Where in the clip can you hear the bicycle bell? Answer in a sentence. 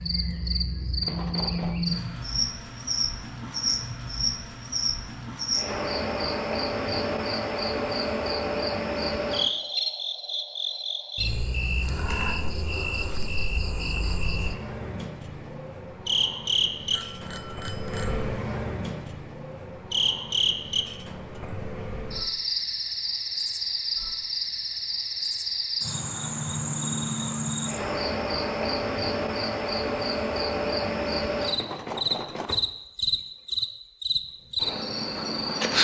You can hear the bicycle bell from 1.0 to 1.8 s, from 16.9 to 18.2 s and from 31.5 to 32.7 s.